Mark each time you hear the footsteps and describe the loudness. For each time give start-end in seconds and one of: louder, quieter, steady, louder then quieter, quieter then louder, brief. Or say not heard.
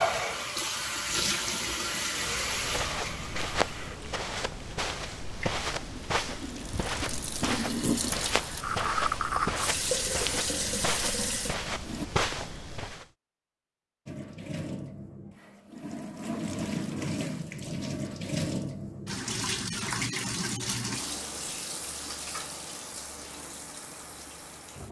2.4-13.1 steady.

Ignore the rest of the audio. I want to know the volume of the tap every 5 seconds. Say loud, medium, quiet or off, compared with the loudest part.
loud, loud, loud, loud, medium.